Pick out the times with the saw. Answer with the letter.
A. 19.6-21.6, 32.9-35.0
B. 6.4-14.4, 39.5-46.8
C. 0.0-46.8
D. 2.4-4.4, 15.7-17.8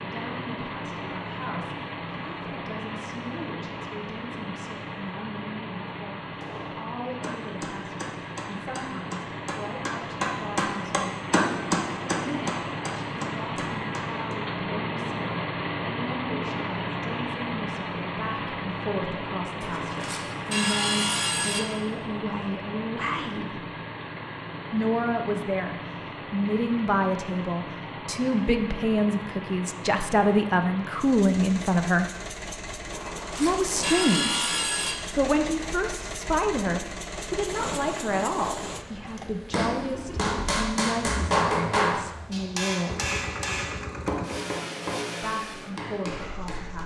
A.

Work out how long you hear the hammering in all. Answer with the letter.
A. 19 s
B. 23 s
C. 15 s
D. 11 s
C.